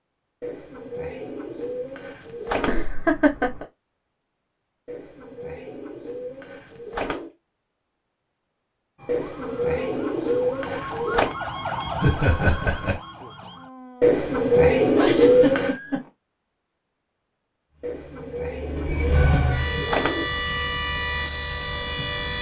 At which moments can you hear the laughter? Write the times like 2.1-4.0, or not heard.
2.6-3.6, 12.0-12.9, 14.9-16.1.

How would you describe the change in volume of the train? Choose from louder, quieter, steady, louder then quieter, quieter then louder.
louder then quieter.